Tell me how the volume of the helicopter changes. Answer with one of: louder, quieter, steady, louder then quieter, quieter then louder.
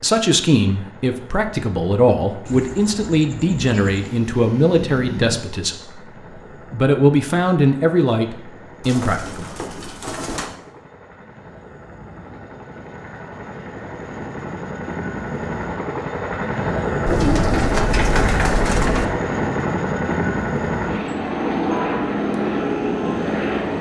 louder.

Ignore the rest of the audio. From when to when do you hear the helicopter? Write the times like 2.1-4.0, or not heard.
0.0-23.7.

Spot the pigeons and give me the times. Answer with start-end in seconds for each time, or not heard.
2.5-4.2, 8.8-10.6, 17.1-19.1.